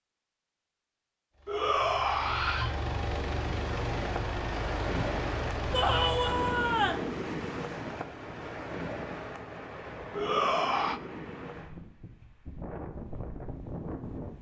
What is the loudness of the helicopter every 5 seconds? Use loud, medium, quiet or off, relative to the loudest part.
loud, loud, off.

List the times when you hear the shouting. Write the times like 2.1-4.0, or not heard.
1.4-2.8, 5.7-7.0, 10.2-11.0.